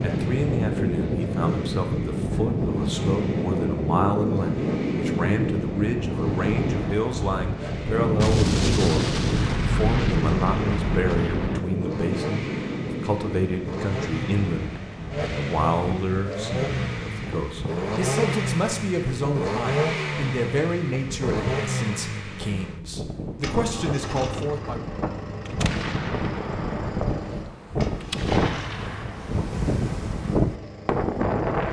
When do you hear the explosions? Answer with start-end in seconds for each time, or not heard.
8.2-11.7, 25.4-29.4.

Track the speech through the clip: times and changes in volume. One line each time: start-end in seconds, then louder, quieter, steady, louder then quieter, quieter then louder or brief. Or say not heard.
0.0-24.9 steady.